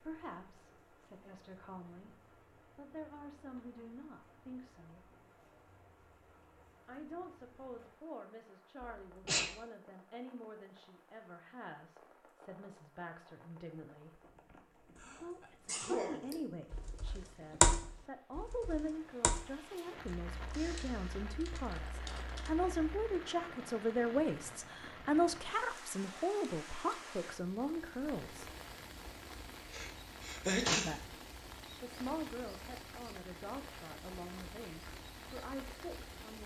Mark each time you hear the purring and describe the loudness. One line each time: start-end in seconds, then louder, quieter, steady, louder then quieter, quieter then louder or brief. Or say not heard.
not heard.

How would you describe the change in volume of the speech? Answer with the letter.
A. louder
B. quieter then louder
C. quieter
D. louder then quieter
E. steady
D.